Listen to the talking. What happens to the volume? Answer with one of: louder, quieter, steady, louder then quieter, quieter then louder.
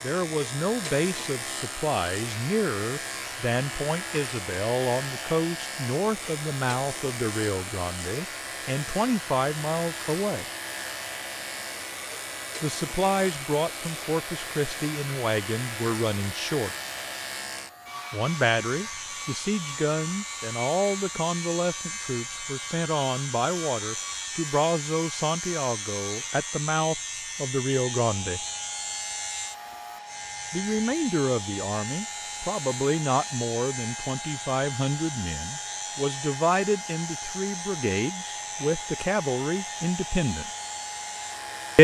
steady.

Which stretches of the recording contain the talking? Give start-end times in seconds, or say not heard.
0.0-10.4, 12.6-16.8, 18.1-28.4, 30.5-40.5.